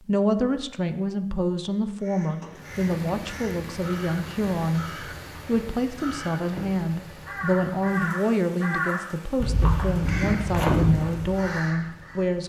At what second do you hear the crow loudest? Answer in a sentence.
The volume of the crow peaks at 11 seconds.